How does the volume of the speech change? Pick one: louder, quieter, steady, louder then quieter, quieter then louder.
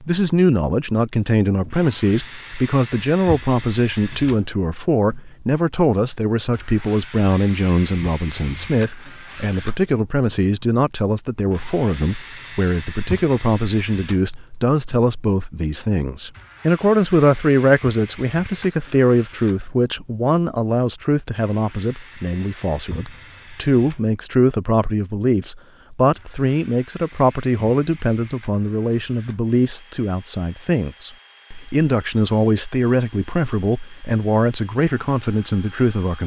steady.